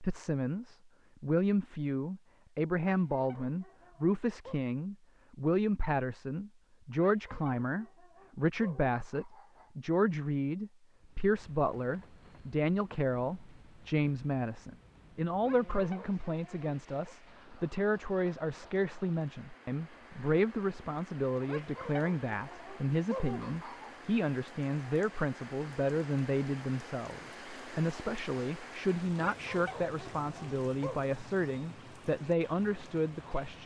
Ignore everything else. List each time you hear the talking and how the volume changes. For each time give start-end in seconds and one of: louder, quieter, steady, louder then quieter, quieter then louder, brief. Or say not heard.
0.0-33.6 steady.